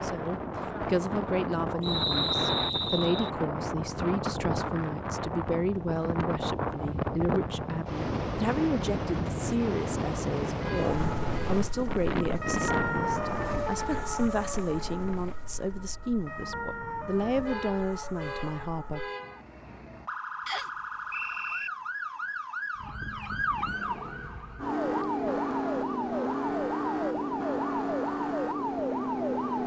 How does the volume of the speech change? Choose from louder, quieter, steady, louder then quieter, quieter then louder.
steady.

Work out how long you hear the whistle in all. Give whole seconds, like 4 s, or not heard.
3 s.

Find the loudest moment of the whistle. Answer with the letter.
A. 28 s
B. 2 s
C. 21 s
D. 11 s
B.